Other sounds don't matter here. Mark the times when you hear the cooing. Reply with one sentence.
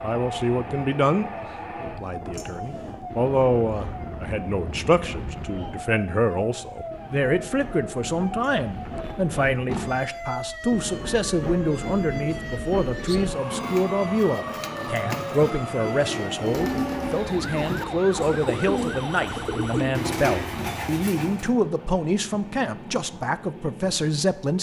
The cooing can be heard from 12.9 to 21.5 s.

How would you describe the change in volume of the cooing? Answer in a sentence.
The loudness of the cooing goes up.